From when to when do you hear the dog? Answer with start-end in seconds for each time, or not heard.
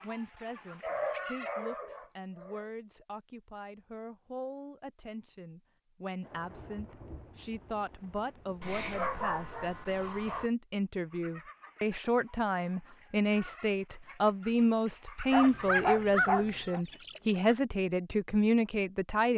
0.8-2.6, 8.6-10.5, 15.3-16.8.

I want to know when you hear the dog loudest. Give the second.
16 s.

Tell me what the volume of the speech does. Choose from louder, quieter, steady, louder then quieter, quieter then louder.
louder.